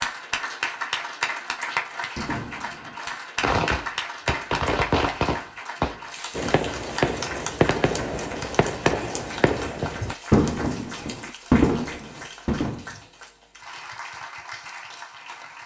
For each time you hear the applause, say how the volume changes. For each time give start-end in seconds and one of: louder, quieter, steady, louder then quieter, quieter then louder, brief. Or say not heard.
0.0-15.6 quieter.